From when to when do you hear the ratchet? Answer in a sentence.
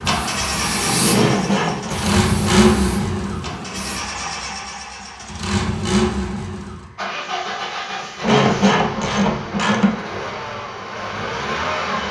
You can hear the ratchet from 1.1 to 2.8 s and from 8.2 to 9.9 s.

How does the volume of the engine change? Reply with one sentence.
The loudness of the engine goes down.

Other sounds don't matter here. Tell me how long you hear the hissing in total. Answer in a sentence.
You can hear the hissing for 4 seconds altogether.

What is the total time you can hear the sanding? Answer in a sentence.
The sanding can't be heard in this clip.